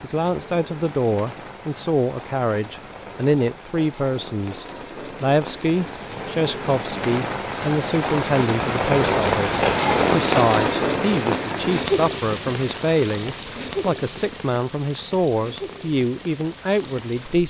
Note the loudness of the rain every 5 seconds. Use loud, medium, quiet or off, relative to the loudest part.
quiet, loud, loud, quiet.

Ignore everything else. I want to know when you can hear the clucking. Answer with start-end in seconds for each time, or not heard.
not heard.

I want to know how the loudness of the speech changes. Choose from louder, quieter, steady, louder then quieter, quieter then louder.
steady.